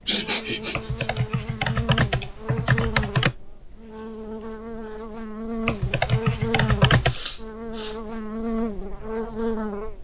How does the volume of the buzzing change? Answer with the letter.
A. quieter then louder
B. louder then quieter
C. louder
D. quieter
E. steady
C.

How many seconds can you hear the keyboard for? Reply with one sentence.
The keyboard can be heard for 4 seconds in total.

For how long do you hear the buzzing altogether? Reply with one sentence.
You can hear the buzzing for 10 seconds altogether.